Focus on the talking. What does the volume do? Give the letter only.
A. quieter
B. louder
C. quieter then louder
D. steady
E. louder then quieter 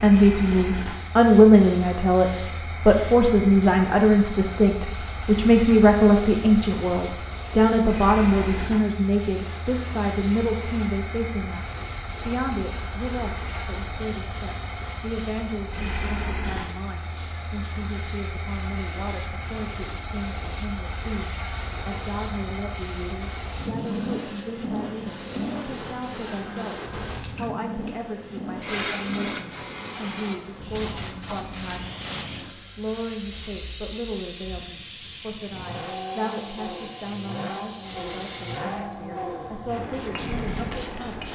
A.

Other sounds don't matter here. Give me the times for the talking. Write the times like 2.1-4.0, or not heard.
0.0-41.3.